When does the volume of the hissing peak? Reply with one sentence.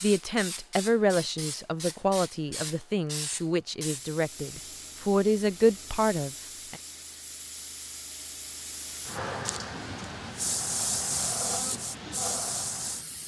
The volume of the hissing peaks at 11 seconds.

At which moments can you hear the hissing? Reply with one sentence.
You can hear the hissing from 0.0 to 13.2 s.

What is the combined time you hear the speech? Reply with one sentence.
The speech can be heard for 7 seconds in total.